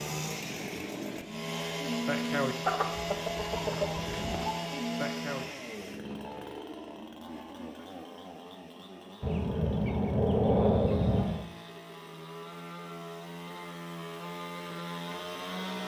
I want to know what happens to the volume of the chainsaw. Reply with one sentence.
The loudness of the chainsaw goes down, then up.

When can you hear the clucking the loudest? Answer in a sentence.
The loudest moment of the clucking is at 11 seconds.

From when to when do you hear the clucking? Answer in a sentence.
You can hear the clucking from 2.6 to 4.5 s and from 9.2 to 11.4 s.